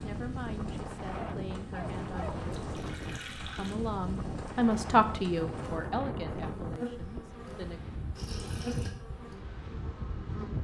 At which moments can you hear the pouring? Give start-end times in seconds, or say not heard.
2.2-3.8, 8.2-8.9.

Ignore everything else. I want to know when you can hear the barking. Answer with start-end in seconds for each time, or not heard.
1.1-2.4.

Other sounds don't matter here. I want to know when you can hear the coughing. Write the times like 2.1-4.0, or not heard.
not heard.